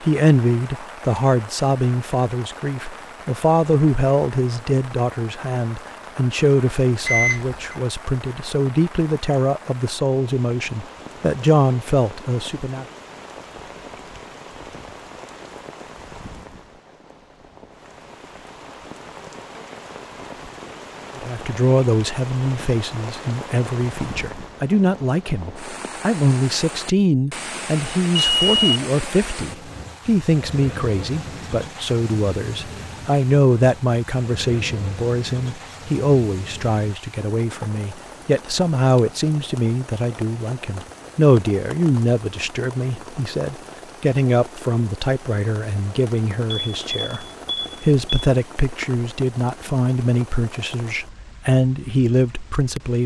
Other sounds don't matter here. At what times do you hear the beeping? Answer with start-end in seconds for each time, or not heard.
7.0-7.8, 28.1-28.8, 46.5-48.3.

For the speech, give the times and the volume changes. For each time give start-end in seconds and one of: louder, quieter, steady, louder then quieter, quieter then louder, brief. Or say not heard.
0.0-12.8 steady
21.1-53.0 steady.